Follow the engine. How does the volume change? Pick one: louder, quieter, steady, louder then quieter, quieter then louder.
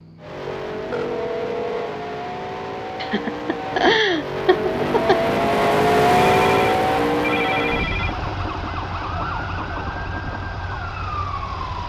louder then quieter.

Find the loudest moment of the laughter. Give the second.
4 s.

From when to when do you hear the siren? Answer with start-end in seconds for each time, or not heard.
8.0-11.8.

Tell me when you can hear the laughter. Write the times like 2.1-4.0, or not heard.
3.0-5.2.